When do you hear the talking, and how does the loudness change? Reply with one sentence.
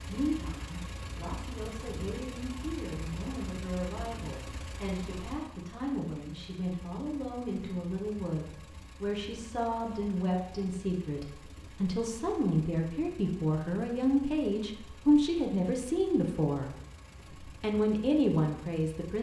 You can hear the talking from 0.0 to 16.7 s, getting louder; and briefly from 17.4 to 19.1 s.